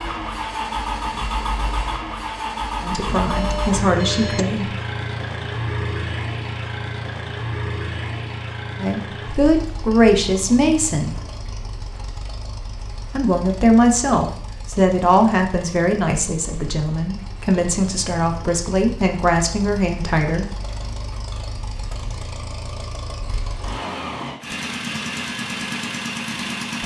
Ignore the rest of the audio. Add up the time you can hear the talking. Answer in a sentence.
You can hear the talking for 12 seconds altogether.